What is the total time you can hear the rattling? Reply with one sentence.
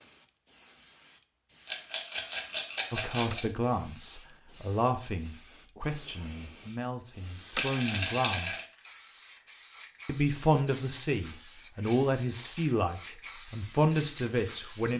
You can hear the rattling for 3 seconds altogether.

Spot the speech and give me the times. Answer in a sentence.
The speech can be heard from 2.9 to 8.6 s and from 10.1 to 14.9 s.